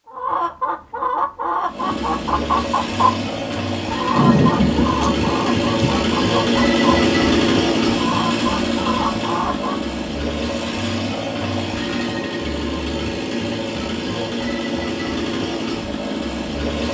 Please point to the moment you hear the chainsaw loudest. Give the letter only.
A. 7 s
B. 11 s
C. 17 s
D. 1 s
A.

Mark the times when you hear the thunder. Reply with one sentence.
You can hear the thunder from 4.2 to 6.0 s.